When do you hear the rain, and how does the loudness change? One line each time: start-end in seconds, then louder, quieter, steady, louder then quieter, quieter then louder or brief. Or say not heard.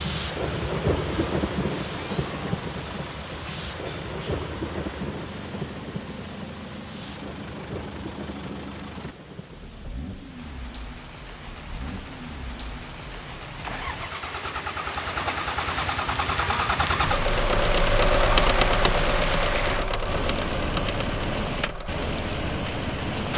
0.0-23.3 quieter then louder.